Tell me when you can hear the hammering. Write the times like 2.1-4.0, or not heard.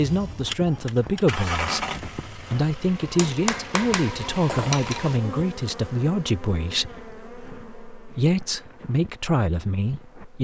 3.0-5.0.